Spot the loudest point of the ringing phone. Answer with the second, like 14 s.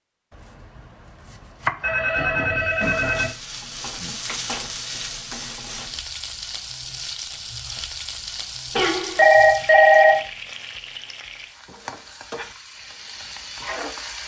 10 s.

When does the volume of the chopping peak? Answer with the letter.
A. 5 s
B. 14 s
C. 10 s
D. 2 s
D.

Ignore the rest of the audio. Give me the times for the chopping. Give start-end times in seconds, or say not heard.
0.3-2.1.